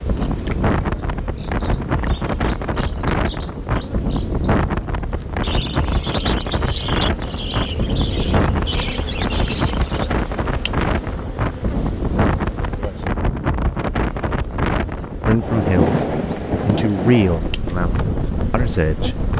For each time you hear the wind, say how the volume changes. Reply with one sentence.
The wind can be heard from 0.1 to 19.3 s, at a steady volume.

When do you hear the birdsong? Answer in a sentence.
You can hear the birdsong from 0.0 to 10.1 s.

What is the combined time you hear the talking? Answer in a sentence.
You can hear the talking for 4 seconds altogether.